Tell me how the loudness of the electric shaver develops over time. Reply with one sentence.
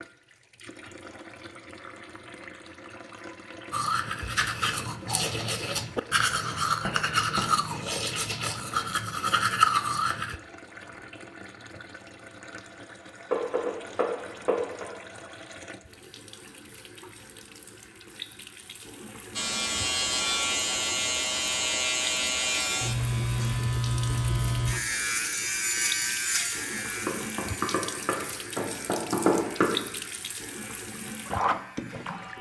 The volume of the electric shaver goes down.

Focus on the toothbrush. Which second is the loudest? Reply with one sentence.
The loudest moment of the toothbrush is at 10 seconds.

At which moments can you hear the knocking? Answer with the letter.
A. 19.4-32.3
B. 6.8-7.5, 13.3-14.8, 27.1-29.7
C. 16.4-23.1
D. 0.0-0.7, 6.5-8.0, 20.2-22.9
B.